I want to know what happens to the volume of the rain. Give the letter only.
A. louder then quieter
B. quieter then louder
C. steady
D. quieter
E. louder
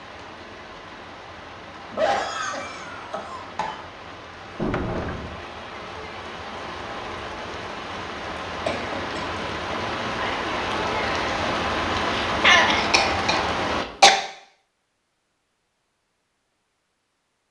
E.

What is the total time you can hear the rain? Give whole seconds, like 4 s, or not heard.
14 s.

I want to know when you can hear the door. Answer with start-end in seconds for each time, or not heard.
4.5-5.3.